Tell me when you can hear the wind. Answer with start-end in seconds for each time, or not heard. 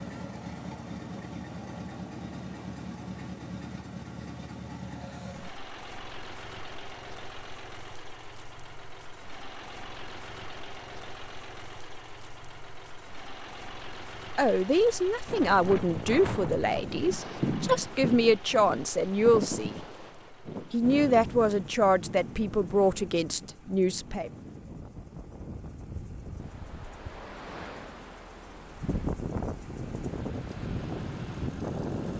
15.2-32.1.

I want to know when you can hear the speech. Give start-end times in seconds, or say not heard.
14.3-19.8, 20.7-24.3.